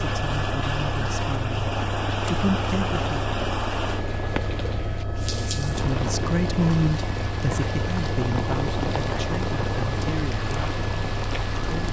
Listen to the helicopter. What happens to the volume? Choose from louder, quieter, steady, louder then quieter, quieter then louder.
steady.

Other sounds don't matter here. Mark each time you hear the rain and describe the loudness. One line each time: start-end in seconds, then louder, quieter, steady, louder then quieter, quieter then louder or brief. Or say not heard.
0.0-11.8 steady.